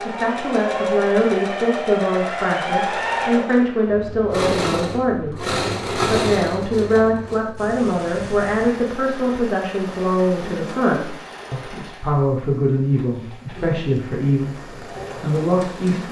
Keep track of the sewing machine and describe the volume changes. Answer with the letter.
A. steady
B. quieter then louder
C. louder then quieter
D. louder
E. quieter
E.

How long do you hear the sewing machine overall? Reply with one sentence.
You can hear the sewing machine for 16 seconds altogether.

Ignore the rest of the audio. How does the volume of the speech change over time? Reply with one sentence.
The loudness of the speech stays about the same.